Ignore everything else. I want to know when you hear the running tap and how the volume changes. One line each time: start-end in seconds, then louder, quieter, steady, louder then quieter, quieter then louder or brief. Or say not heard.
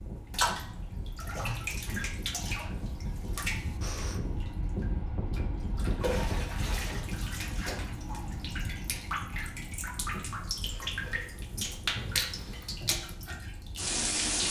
0.0-14.4 quieter then louder.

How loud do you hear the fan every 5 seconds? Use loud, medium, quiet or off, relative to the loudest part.
loud, loud, medium.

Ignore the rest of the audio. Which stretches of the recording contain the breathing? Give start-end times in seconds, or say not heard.
3.8-4.2, 10.6-11.5.